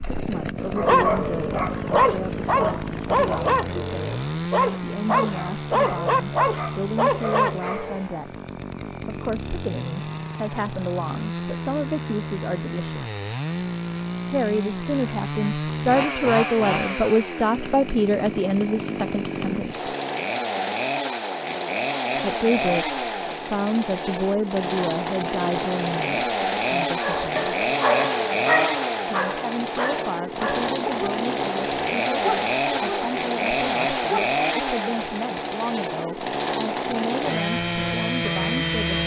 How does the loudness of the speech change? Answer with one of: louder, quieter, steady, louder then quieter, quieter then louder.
louder then quieter.